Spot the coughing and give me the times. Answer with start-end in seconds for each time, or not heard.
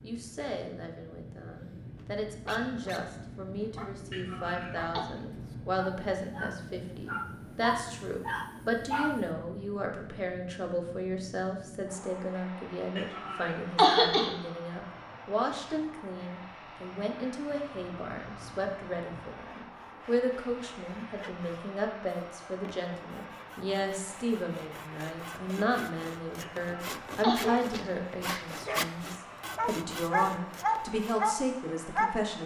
4.1-5.0, 12.9-14.3, 26.4-27.4.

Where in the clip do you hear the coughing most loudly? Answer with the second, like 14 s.
14 s.